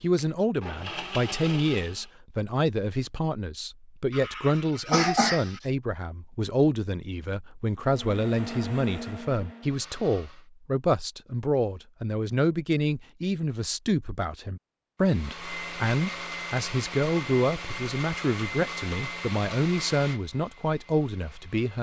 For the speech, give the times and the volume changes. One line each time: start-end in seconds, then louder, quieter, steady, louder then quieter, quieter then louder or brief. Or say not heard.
0.0-21.7 steady.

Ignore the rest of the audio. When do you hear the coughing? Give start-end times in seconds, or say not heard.
4.1-5.6.